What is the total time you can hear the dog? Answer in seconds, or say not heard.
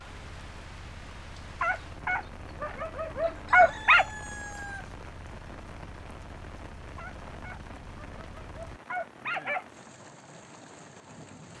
5 s.